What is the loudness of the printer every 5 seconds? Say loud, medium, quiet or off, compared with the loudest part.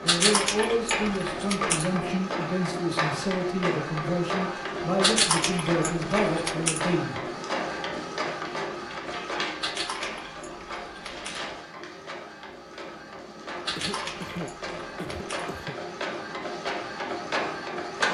loud, loud, medium, loud.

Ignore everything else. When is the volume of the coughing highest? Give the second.
14 s.